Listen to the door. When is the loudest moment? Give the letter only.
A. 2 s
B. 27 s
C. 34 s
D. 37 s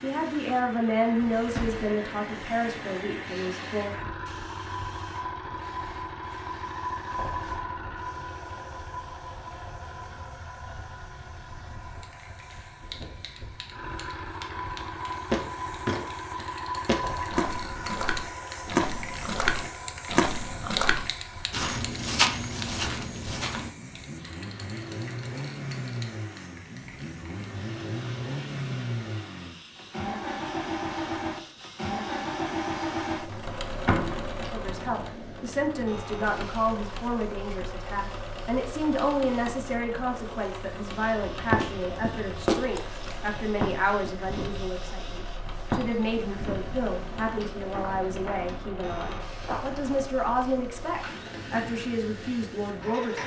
C.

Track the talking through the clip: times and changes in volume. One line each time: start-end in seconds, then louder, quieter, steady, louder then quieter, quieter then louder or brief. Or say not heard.
0.0-4.1 quieter
34.5-53.2 steady.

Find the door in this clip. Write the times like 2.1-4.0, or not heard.
1.4-1.9, 33.3-34.4.